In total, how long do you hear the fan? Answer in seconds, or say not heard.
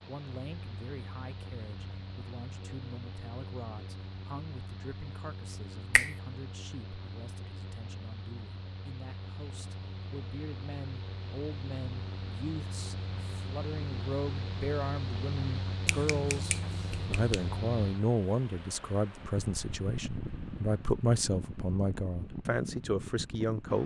24 s.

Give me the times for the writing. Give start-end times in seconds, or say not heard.
not heard.